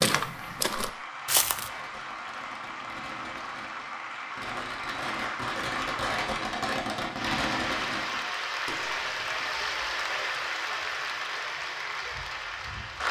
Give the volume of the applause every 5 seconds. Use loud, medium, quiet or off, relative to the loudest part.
medium, loud, loud.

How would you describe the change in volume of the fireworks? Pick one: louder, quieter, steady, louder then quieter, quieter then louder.
louder then quieter.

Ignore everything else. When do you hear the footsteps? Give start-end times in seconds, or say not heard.
0.0-1.7.